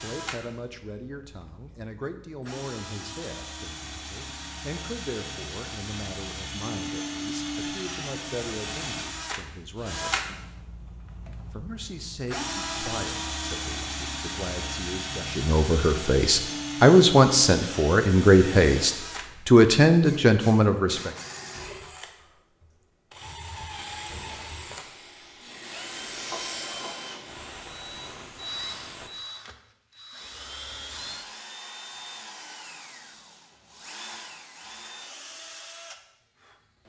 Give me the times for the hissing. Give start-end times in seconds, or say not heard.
23.8-29.1.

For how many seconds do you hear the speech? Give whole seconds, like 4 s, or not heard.
20 s.